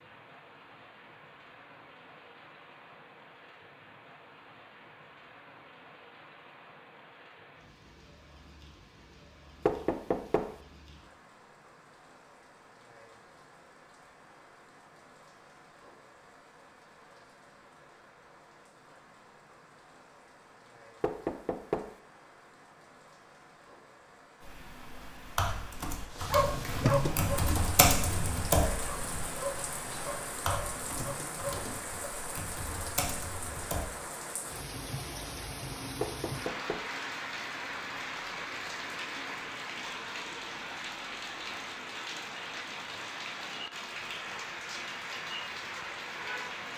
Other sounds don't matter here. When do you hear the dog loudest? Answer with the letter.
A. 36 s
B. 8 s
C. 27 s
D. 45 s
C.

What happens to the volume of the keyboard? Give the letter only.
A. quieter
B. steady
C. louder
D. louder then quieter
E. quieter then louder
D.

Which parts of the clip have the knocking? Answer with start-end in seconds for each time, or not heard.
9.7-10.6, 21.0-21.9, 36.0-36.9.